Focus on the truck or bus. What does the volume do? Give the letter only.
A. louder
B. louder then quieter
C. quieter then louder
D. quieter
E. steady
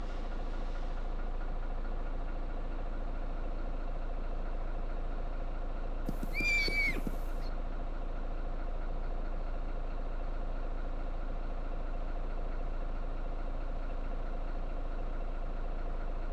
E.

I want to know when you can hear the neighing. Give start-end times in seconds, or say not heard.
6.0-7.5.